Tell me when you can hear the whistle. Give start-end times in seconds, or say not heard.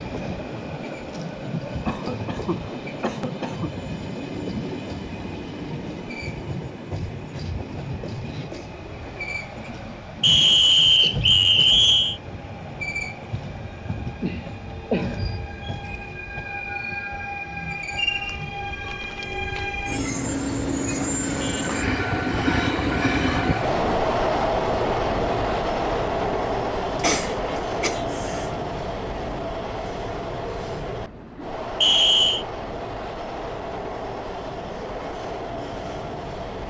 10.2-12.2, 31.8-32.5.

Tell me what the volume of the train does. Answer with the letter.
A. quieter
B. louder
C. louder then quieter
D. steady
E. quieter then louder
C.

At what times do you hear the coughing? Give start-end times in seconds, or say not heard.
1.9-3.7, 14.2-15.2, 26.9-28.5.